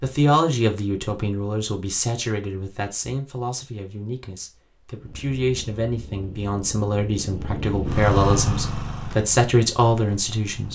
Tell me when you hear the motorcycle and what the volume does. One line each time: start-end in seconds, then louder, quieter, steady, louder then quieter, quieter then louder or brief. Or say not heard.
5.0-10.6 louder then quieter.